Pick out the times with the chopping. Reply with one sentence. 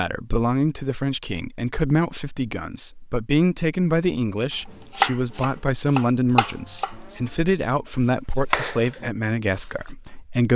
The chopping can be heard from 5.0 to 7.9 s and from 8.5 to 9.1 s.